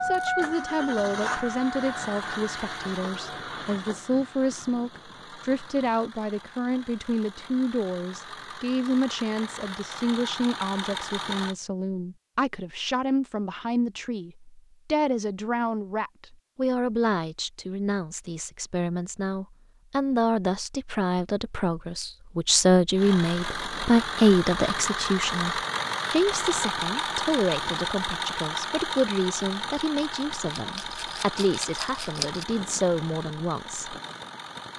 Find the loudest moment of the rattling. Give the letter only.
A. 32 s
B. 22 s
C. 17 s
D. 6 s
A.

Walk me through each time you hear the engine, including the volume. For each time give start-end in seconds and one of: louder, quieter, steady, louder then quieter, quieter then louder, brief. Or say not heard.
0.0-11.6 quieter then louder
22.9-34.7 quieter.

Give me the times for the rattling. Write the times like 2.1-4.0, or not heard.
30.5-32.5.